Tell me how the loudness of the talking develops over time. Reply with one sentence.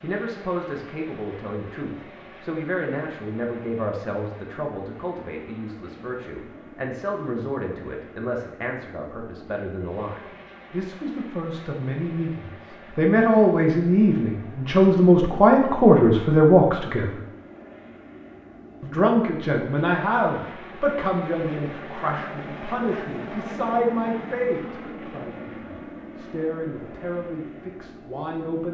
The volume of the talking goes up, then down.